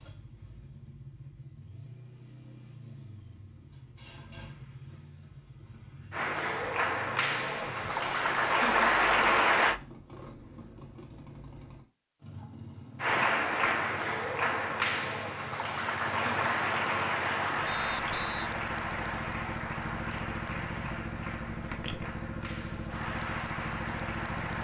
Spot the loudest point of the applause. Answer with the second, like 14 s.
9 s.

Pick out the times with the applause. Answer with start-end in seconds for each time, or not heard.
6.1-9.8, 13.0-24.5.